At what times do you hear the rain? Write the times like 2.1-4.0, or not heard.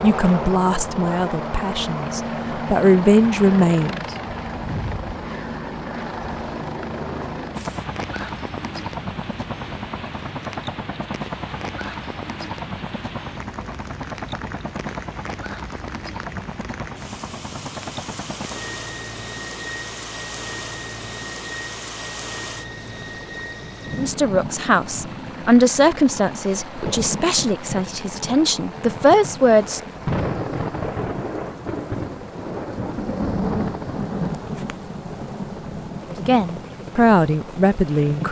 7.5-38.2.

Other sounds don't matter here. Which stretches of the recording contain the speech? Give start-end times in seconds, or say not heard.
0.0-4.2, 23.9-29.8, 36.1-38.2.